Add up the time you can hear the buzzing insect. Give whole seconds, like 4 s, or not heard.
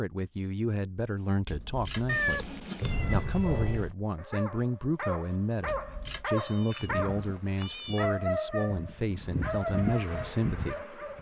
4 s.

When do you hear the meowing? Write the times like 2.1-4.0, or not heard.
2.0-4.0, 6.3-8.1.